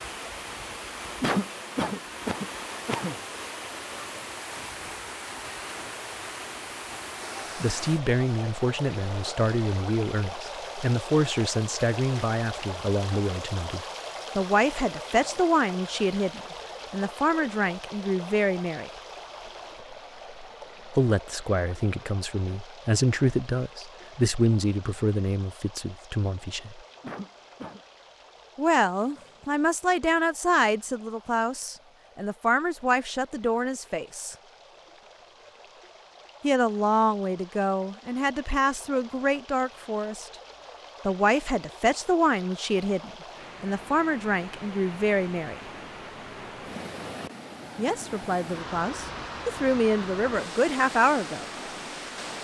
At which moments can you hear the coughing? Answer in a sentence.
You can hear the coughing from 1.2 to 3.1 s and from 27.0 to 27.8 s.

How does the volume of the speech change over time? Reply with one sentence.
The volume of the speech stays about the same.